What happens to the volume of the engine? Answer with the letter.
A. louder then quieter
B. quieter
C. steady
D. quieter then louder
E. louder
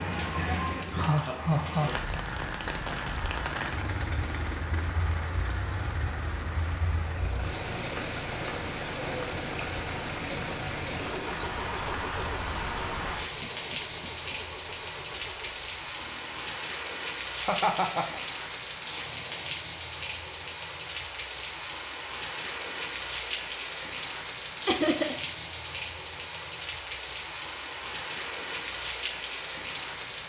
B.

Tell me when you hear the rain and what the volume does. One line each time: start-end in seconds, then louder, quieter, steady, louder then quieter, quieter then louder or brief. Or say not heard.
0.0-30.2 steady.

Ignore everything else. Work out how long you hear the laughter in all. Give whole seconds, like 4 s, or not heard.
3 s.